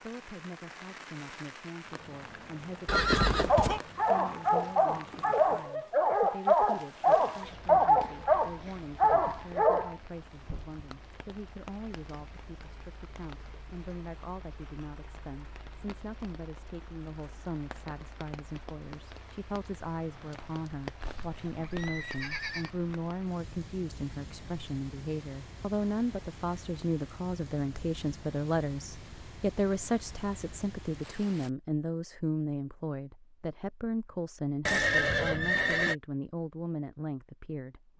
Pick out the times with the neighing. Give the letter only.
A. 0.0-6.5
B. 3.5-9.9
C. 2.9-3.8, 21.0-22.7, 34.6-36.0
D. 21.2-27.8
C.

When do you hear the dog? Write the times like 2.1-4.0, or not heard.
3.5-9.9.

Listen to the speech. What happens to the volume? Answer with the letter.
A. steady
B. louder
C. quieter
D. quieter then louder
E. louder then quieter
B.